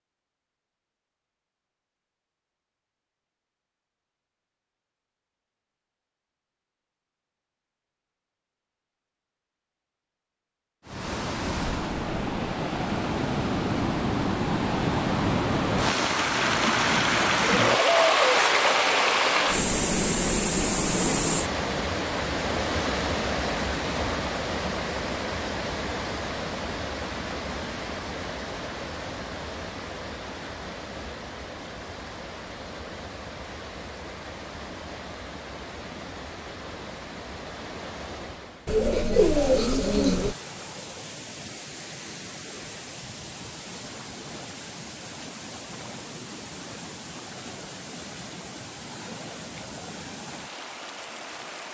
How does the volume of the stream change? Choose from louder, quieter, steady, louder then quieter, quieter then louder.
quieter.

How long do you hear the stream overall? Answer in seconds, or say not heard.
41 s.